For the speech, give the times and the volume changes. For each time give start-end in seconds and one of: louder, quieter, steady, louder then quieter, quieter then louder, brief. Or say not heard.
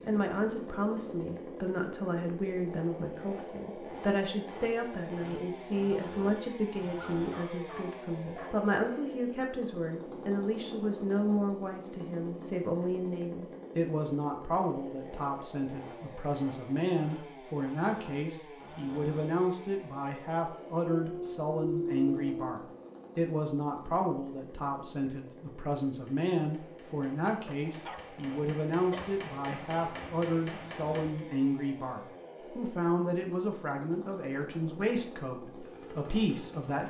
0.0-36.8 steady.